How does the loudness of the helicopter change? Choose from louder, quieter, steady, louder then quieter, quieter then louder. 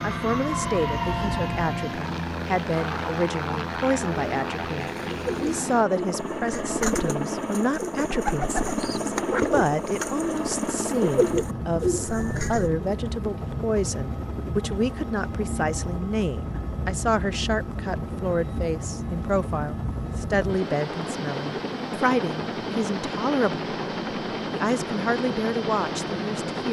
steady.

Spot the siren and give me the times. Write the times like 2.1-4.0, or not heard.
0.0-1.7.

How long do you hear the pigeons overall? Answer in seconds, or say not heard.
8 s.